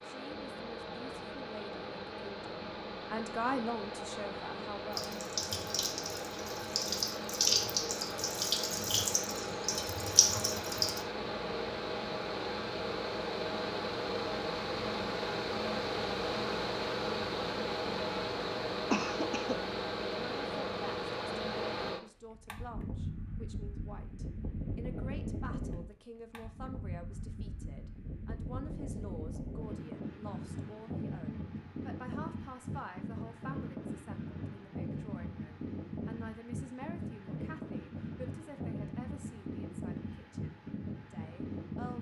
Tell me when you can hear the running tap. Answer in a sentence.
The running tap can be heard from 4.9 to 11.0 s.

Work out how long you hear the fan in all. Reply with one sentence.
The fan can be heard for 42 seconds in total.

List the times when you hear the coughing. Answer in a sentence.
You can hear the coughing from 18.9 to 19.6 s.